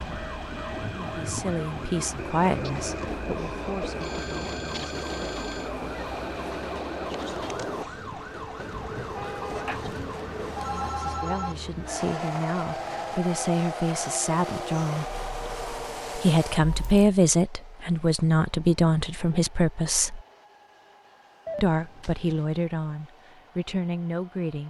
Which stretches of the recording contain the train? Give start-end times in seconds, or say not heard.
0.0-24.6.